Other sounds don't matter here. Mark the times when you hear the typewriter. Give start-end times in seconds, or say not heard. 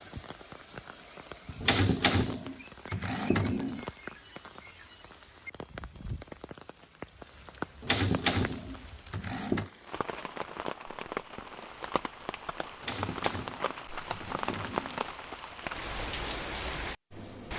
1.6-3.8, 7.8-9.7, 12.8-15.1.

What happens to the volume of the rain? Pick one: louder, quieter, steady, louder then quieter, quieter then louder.
louder.